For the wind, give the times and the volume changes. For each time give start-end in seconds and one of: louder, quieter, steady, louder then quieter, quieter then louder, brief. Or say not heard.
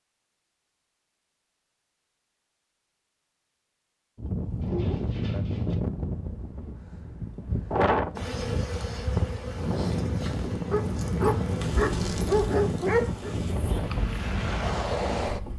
4.2-15.5 steady.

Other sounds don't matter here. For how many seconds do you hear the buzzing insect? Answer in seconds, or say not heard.
7 s.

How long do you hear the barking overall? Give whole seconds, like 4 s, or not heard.
4 s.